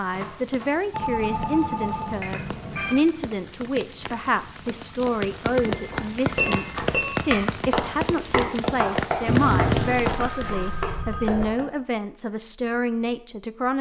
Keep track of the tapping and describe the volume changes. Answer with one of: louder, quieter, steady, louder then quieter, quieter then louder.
quieter.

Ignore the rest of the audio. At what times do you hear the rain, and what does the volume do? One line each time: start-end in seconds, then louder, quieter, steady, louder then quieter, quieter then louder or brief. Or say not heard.
0.0-10.5 louder.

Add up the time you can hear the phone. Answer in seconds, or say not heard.
5 s.